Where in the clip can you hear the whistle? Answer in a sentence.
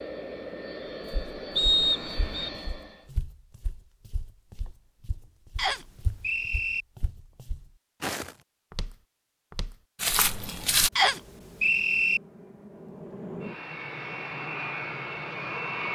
The whistle can be heard from 1.6 to 2.5 s, from 5.5 to 6.8 s and from 10.9 to 12.2 s.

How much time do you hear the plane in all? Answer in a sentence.
You can hear the plane for 8 seconds altogether.